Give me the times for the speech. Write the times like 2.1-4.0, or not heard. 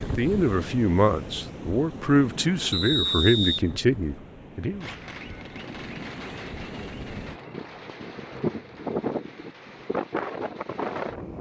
0.0-4.9.